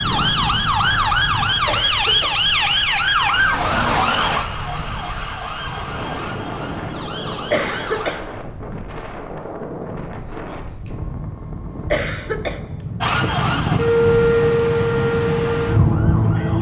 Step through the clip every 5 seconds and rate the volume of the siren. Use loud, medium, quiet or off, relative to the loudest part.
loud, quiet, loud, loud.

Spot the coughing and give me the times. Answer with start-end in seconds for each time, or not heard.
1.6-2.4, 7.5-8.2, 11.9-12.6.